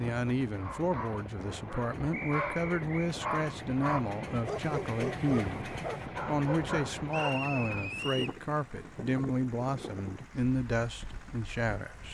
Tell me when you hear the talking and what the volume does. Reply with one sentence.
The talking can be heard from 0.0 to 12.0 s, at a steady volume.